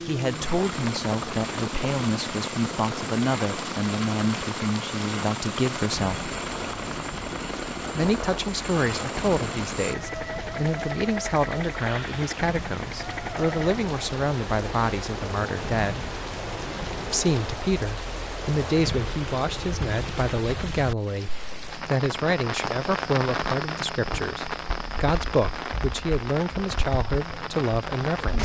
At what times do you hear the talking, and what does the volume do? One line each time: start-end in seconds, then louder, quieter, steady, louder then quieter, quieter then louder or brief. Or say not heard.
0.0-6.3 steady
8.0-16.1 steady
17.1-28.4 steady.